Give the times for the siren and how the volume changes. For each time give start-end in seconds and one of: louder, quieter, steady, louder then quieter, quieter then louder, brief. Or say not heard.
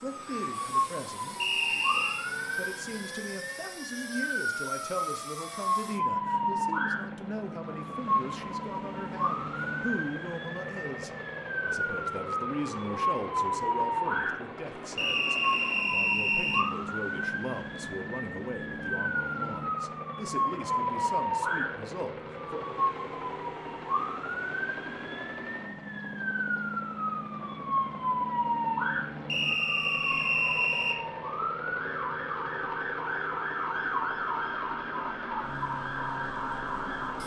0.0-37.2 steady.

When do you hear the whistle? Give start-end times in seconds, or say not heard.
1.4-2.2, 14.9-16.6, 29.2-31.0.